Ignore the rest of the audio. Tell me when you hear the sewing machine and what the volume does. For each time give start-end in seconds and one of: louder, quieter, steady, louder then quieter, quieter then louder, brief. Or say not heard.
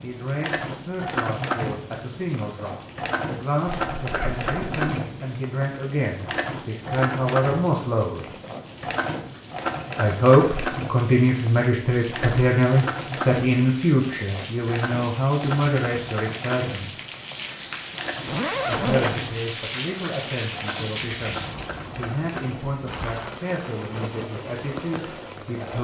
0.0-25.7 quieter.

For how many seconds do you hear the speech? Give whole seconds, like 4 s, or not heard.
22 s.